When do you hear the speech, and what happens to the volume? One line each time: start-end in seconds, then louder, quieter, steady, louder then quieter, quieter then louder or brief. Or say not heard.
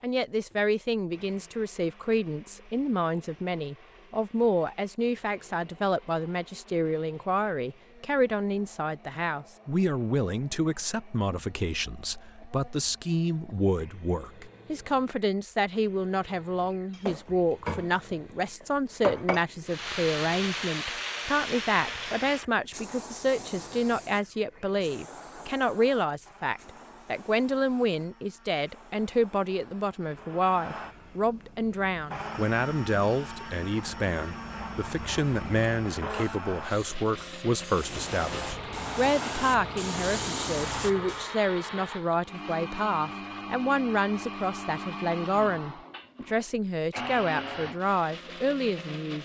0.0-49.1 steady.